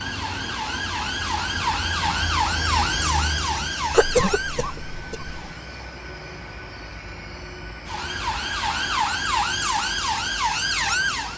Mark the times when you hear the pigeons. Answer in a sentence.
You can't hear the pigeons here.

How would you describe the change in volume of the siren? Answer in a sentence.
The loudness of the siren goes down, then up.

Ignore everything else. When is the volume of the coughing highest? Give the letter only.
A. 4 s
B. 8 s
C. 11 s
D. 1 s
A.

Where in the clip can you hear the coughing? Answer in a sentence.
You can hear the coughing from 3.9 to 5.3 s.